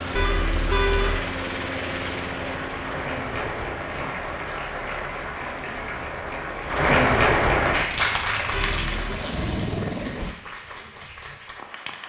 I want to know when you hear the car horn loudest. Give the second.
1 s.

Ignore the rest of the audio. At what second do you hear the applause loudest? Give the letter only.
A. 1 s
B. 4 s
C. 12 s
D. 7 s
D.